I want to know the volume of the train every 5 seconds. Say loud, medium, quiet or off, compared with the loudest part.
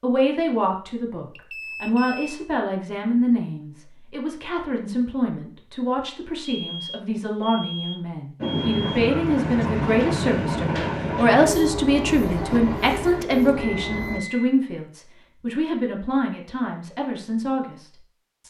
off, loud, loud, off.